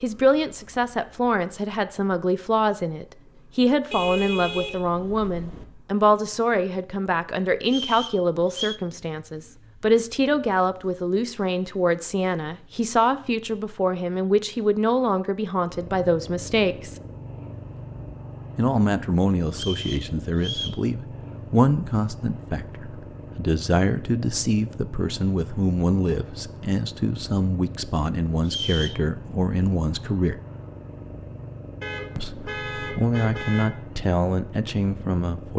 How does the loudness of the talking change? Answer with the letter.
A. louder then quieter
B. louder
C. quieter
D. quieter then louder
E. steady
E.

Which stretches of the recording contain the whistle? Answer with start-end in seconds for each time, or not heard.
7.7-8.8, 19.5-20.8, 28.4-29.0.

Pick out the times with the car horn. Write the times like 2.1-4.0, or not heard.
3.9-5.7, 31.8-33.7.